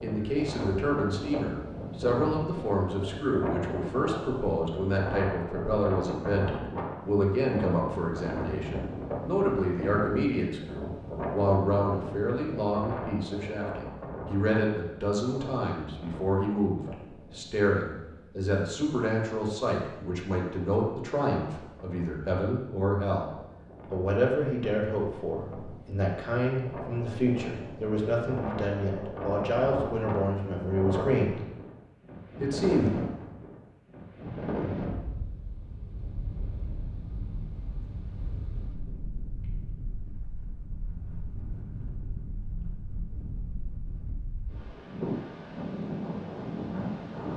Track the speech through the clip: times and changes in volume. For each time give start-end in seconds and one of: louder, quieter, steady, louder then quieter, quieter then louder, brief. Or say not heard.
0.0-31.4 steady
32.4-32.9 brief.